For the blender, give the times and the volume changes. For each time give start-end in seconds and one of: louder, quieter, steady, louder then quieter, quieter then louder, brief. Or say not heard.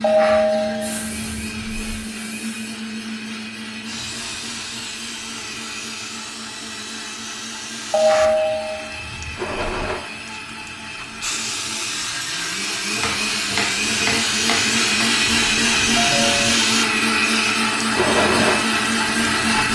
0.0-19.6 louder.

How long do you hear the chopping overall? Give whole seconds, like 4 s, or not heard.
2 s.